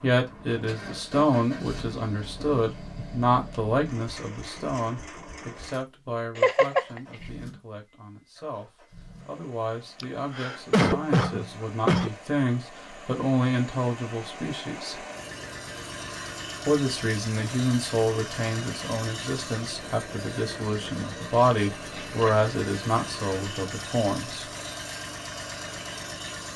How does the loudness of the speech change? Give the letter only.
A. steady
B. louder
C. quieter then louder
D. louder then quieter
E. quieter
C.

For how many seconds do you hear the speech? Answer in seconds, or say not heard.
23 s.